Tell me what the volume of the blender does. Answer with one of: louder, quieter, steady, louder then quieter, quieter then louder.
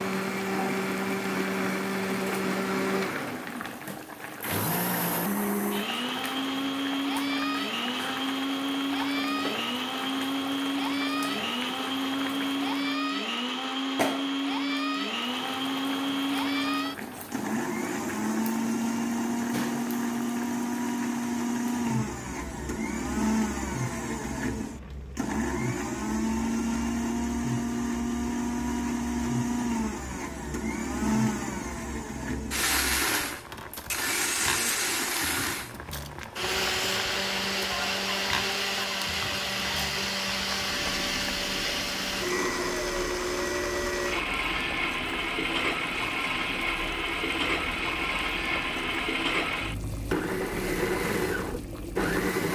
steady.